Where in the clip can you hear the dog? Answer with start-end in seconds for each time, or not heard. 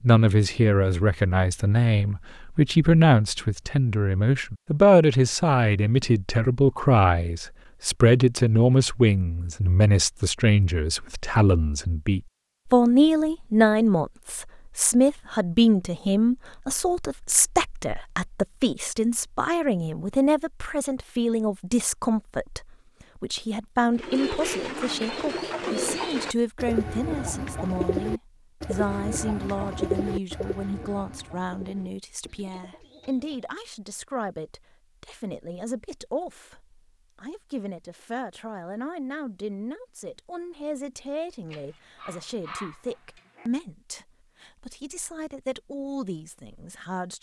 41.5-43.5.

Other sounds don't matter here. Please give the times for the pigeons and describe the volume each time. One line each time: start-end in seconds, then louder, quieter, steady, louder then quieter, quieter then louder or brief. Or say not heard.
23.9-33.5 quieter.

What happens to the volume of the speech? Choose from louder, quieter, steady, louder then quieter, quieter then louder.
quieter.